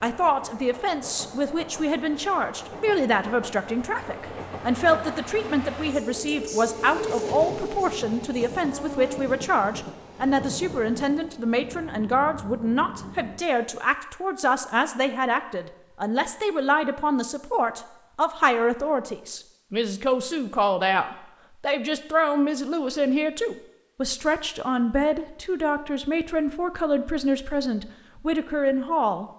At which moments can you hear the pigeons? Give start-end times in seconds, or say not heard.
not heard.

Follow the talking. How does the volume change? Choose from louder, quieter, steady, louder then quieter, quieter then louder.
steady.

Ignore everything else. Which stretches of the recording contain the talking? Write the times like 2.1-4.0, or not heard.
0.0-29.3.